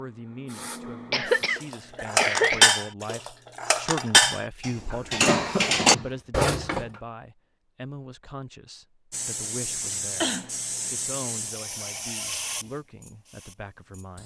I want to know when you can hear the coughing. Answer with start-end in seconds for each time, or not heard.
1.1-2.7, 4.9-6.1, 9.9-10.5.